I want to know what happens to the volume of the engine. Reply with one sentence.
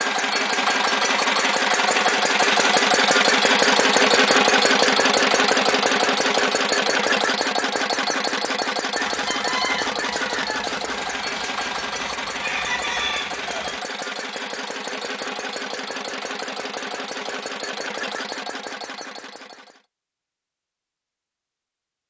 The loudness of the engine goes down.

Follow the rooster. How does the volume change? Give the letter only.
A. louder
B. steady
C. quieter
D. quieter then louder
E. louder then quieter
D.